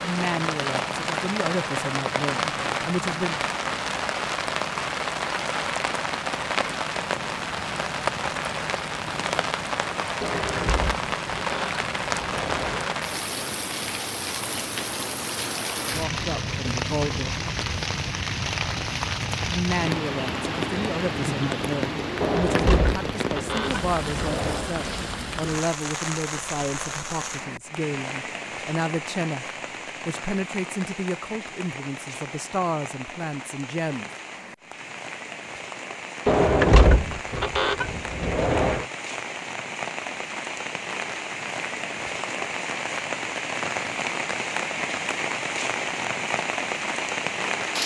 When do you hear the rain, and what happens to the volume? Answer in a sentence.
The rain can be heard from 0.0 to 47.8 s, getting quieter then louder.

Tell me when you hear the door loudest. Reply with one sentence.
The volume of the door peaks at 37 seconds.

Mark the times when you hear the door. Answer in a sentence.
You can hear the door from 10.2 to 12.8 s, from 22.2 to 24.7 s and from 36.2 to 38.9 s.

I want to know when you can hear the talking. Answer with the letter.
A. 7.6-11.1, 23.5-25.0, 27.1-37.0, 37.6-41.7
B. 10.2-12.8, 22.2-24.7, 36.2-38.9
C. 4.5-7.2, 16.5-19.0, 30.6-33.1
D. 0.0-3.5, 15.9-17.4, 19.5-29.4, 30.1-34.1
D.